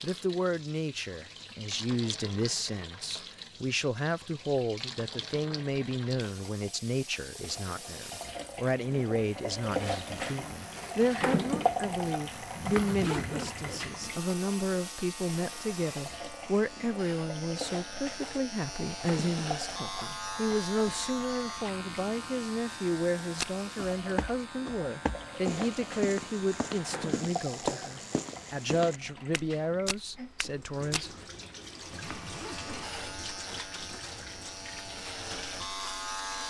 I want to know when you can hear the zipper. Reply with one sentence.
You can hear the zipper from 12.6 to 13.9 s and from 31.9 to 33.0 s.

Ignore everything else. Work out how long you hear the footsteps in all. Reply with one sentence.
You can hear the footsteps for 8 seconds altogether.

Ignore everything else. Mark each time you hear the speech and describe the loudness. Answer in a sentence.
You can hear the speech from 0.0 to 31.1 s, at a steady volume.